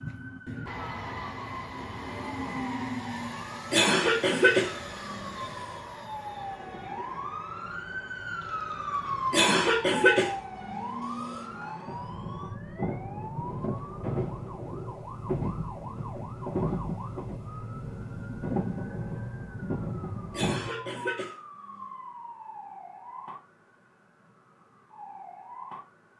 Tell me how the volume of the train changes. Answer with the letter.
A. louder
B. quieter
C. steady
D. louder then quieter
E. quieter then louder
E.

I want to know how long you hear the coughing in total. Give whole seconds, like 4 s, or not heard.
6 s.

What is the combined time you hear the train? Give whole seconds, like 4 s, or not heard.
21 s.